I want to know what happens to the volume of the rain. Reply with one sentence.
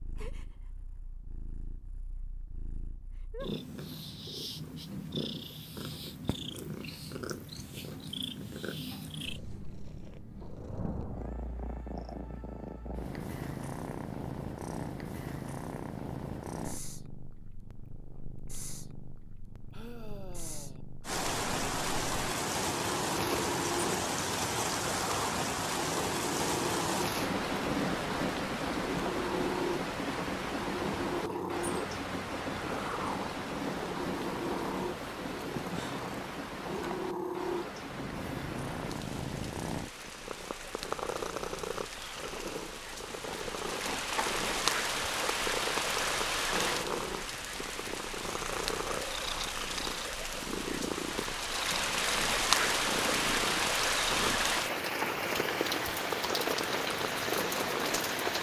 The loudness of the rain goes down, then up.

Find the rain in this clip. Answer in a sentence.
The rain can be heard from 21.1 to 58.3 s.